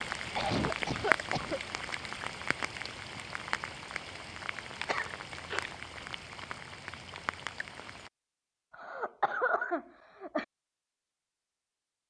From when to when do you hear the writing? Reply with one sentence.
You can't hear the writing here.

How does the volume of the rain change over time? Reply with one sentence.
The loudness of the rain goes down.